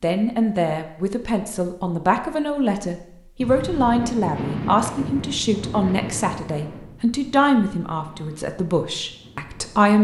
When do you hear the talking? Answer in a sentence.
The talking can be heard from 0.0 to 10.0 s.